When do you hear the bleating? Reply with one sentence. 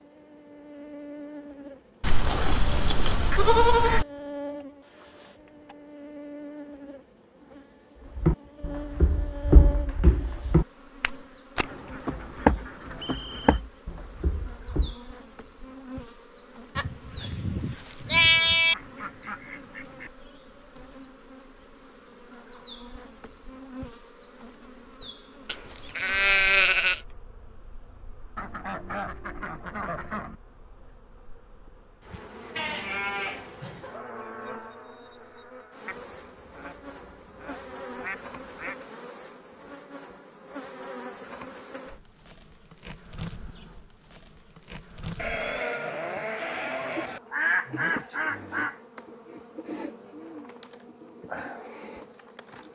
You can hear the bleating from 2.0 to 4.0 s, from 16.8 to 18.8 s, from 25.4 to 27.0 s, from 32.5 to 33.8 s and from 45.1 to 47.2 s.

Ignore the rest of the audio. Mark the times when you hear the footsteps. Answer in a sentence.
The footsteps can be heard from 8.1 to 14.9 s.